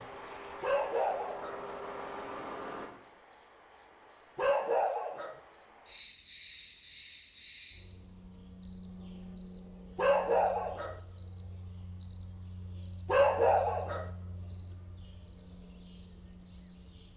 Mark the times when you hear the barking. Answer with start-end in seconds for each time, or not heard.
0.6-1.6, 4.3-5.4, 9.9-11.0, 13.1-14.1.